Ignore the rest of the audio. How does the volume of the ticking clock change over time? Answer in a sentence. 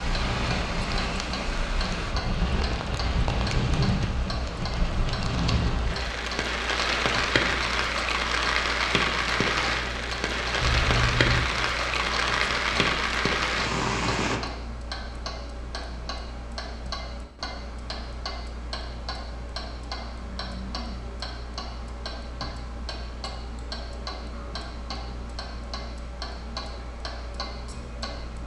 The volume of the ticking clock stays about the same.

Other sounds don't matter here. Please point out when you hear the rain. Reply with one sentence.
You can hear the rain from 0.0 to 14.4 s.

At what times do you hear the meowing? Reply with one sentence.
The meowing can be heard from 10.6 to 11.5 s.